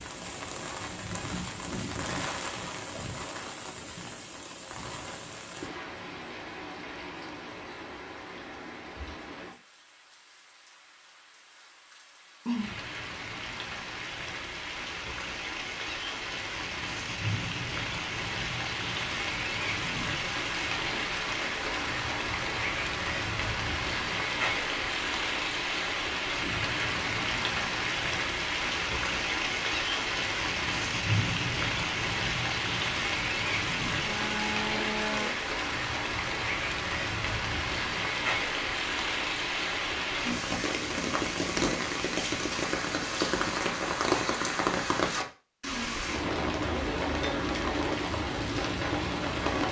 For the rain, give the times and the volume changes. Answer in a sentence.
The rain can be heard from 0.0 to 49.6 s, getting louder.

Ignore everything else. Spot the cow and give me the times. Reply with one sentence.
You can hear the cow from 34.0 to 35.3 s.